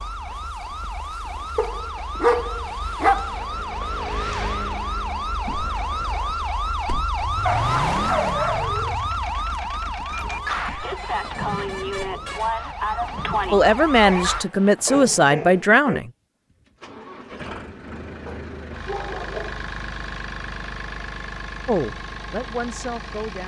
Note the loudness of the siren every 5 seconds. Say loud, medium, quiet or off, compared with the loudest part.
medium, loud, loud, off, off.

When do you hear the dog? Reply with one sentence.
You can hear the dog from 1.6 to 3.3 s, from 7.5 to 8.9 s, from 14.1 to 16.0 s and from 18.2 to 19.6 s.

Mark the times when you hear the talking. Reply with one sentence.
The talking can be heard from 13.5 to 16.1 s and from 21.6 to 23.4 s.